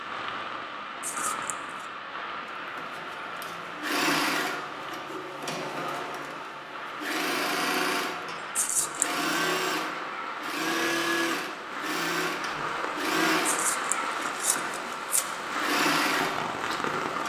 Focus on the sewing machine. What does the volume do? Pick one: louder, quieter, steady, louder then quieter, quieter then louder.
steady.